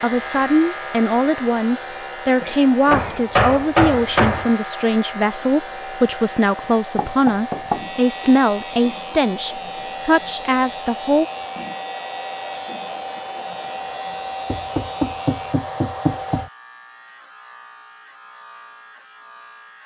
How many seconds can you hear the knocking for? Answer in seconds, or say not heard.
5 s.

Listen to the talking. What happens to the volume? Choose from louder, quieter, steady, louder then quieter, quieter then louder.
steady.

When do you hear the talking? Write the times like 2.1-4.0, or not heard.
0.0-11.2.